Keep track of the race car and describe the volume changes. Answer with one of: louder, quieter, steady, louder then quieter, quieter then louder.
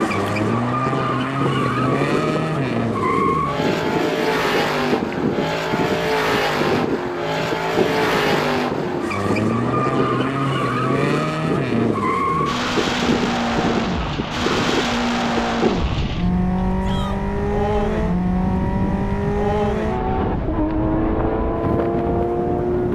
steady.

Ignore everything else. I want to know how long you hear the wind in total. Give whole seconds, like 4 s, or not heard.
23 s.